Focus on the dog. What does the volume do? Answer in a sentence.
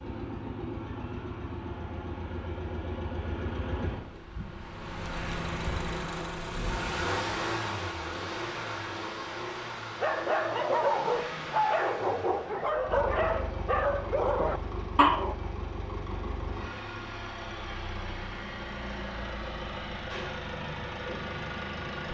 The loudness of the dog stays about the same.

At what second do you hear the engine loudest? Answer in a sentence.
The volume of the engine peaks at 7 seconds.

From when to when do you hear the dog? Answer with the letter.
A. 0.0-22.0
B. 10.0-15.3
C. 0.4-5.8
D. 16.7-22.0
B.